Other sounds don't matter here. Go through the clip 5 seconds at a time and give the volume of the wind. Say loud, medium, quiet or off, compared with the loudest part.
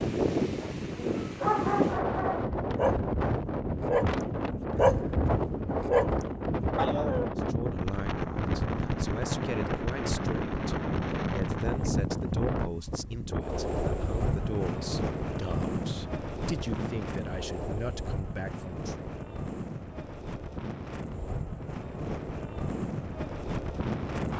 loud, loud, loud, medium, medium.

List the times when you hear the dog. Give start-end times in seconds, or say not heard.
0.6-7.3.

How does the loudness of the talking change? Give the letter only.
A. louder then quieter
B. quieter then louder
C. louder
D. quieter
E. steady
E.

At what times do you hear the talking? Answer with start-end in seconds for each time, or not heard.
7.3-19.1.